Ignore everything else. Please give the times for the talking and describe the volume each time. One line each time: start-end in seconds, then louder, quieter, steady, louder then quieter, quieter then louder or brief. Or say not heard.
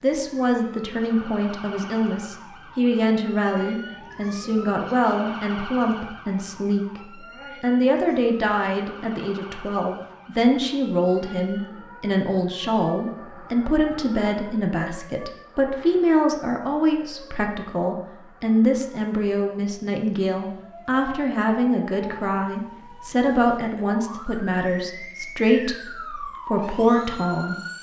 0.0-27.7 steady.